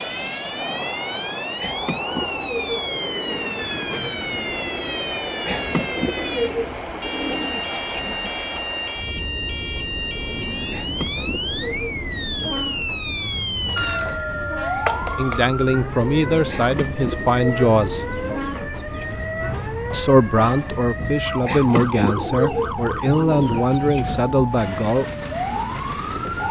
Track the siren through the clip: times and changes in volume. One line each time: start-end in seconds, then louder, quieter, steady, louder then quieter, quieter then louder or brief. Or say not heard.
0.0-26.4 steady.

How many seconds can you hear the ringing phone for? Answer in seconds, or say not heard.
2 s.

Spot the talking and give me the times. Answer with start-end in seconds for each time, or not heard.
15.2-18.1, 19.9-25.1.